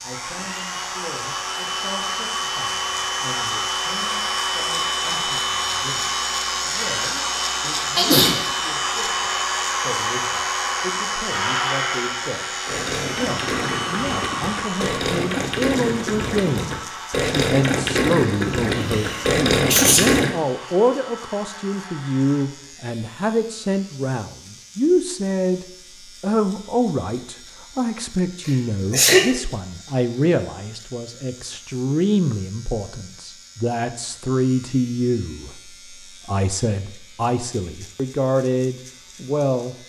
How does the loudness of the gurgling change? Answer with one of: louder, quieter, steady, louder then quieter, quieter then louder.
louder.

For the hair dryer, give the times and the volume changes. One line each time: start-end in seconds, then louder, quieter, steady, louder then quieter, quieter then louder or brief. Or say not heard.
0.0-22.4 quieter.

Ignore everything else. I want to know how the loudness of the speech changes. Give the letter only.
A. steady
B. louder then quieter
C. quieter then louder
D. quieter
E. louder
E.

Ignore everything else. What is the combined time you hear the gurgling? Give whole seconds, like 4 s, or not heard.
8 s.